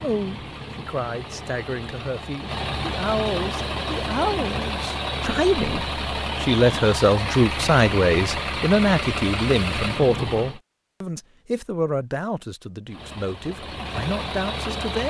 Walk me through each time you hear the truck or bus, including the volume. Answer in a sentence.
You can hear the truck or bus from 0.0 to 10.6 s, getting louder; and briefly from 12.8 to 15.0 s.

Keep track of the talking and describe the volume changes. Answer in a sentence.
The loudness of the talking goes up, then down.